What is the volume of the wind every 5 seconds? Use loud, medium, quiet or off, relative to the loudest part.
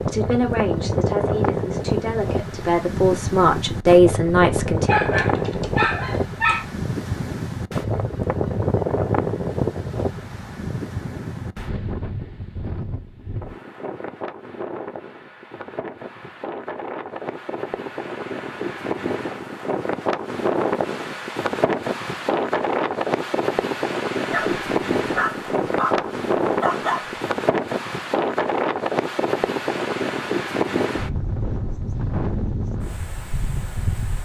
loud, loud, medium, medium, loud, loud, loud.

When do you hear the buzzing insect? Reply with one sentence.
The buzzing insect can't be heard in this clip.